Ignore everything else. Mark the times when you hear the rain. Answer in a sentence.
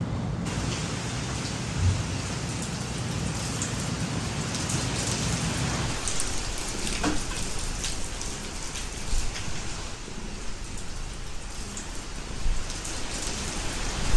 The rain can be heard from 0.0 to 14.1 s.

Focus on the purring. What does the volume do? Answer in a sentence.
The volume of the purring goes down.